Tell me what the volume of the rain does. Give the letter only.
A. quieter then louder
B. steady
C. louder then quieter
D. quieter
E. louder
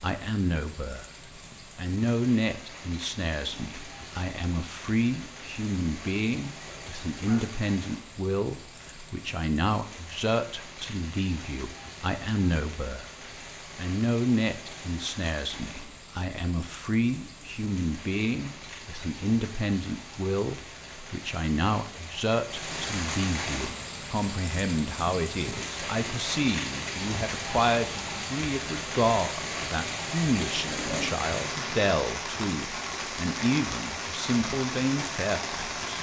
E.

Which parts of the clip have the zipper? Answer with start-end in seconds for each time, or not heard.
6.6-7.5, 30.6-31.8.